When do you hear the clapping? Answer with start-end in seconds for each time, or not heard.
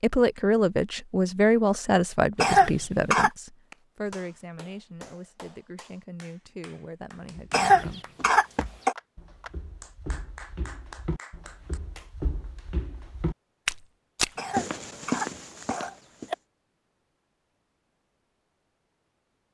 3.7-12.2.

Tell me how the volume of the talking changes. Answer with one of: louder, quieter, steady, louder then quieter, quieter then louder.
quieter.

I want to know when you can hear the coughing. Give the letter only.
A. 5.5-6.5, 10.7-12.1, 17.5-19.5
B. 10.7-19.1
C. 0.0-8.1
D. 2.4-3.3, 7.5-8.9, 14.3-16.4
D.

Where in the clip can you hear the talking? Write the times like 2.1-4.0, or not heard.
0.0-8.1.